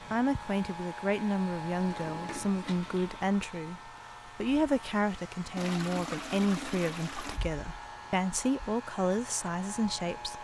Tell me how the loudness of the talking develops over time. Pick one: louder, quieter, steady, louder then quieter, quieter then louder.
steady.